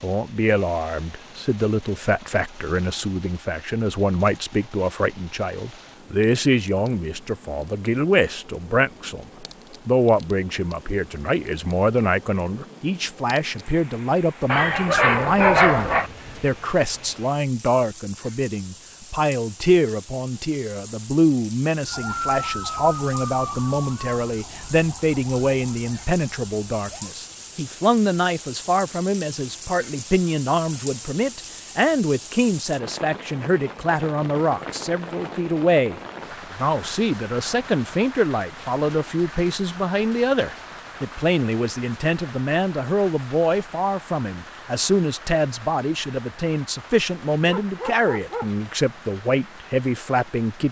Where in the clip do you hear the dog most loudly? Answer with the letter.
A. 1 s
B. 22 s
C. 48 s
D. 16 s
D.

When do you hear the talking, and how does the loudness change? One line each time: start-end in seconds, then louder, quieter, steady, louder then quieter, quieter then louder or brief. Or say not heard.
0.0-50.6 steady.